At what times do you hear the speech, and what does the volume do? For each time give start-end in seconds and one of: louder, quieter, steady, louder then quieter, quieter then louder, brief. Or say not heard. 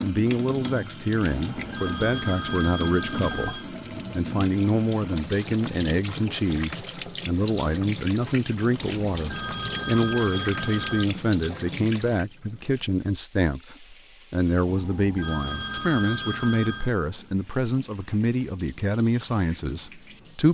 0.0-20.4 steady.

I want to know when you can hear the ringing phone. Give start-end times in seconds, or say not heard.
1.4-3.6, 8.8-11.1, 14.7-16.9.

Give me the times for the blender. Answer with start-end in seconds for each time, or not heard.
not heard.